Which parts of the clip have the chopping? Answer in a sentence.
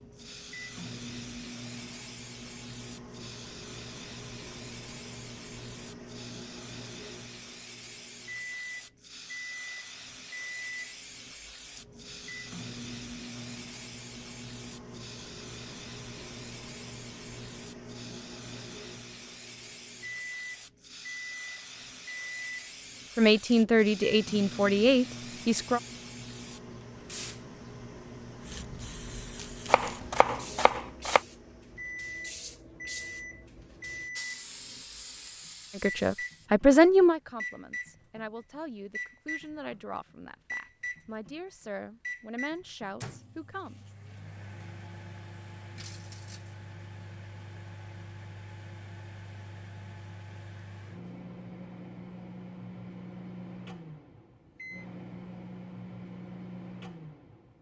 The chopping can be heard from 29.6 to 31.2 s.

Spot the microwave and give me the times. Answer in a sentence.
The microwave can be heard from 0.0 to 57.5 s.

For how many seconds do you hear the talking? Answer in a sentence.
The talking can be heard for 11 seconds in total.